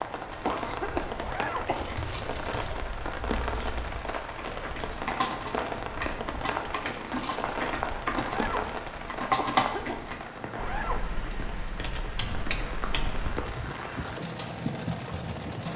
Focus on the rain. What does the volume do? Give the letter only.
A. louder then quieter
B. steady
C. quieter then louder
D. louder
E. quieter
C.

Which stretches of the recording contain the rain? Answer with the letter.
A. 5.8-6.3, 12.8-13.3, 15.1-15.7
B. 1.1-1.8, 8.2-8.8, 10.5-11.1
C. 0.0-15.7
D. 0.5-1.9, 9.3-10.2
C.